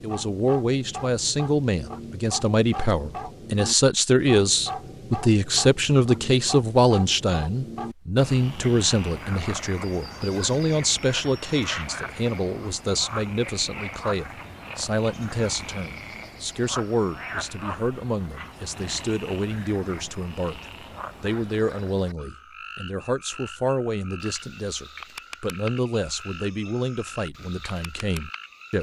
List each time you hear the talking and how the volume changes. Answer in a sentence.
The talking can be heard from 0.0 to 28.7 s, getting quieter.